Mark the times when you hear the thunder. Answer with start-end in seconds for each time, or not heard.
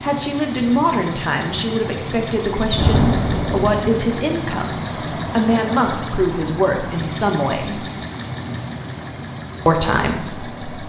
2.7-4.0.